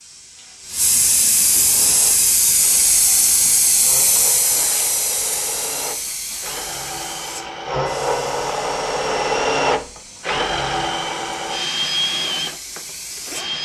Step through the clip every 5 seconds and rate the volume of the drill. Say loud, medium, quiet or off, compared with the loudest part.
quiet, loud, loud.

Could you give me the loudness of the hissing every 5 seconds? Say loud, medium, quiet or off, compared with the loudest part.
loud, medium, quiet.